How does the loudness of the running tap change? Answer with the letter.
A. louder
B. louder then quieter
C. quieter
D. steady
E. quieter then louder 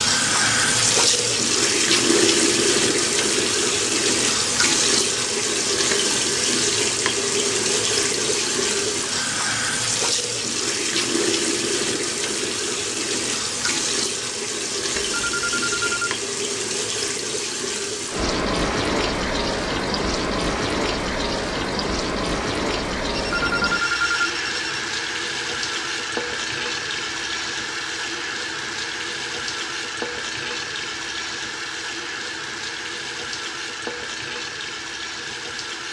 C.